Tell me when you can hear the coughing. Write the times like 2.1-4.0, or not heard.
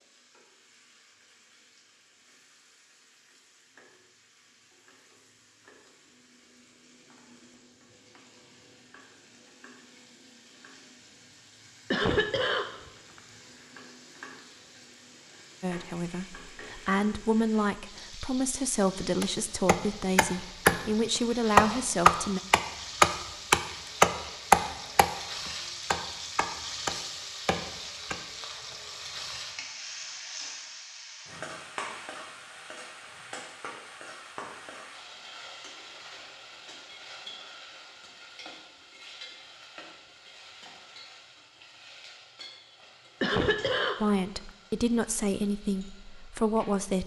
11.9-12.8, 43.2-44.1.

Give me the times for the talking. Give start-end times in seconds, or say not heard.
15.6-22.4, 44.0-47.0.